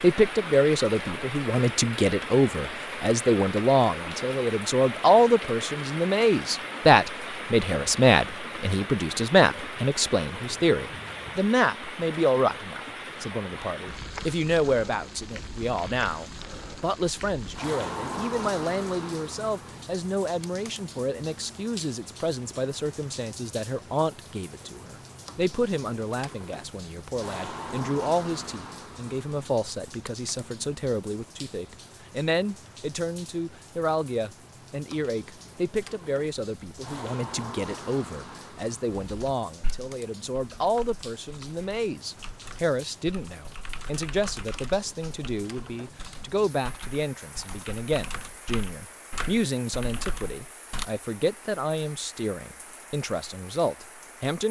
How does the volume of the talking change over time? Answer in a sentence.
The volume of the talking goes down.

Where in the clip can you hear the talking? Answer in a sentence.
The talking can be heard from 0.0 to 54.4 s.